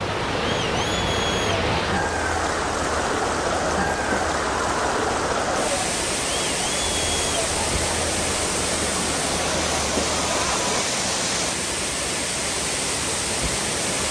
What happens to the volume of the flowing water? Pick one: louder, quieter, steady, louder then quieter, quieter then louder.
steady.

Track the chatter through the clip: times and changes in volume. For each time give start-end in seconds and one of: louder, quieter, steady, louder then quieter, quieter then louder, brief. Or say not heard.
0.0-10.8 steady.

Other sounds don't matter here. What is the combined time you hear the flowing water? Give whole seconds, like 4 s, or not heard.
14 s.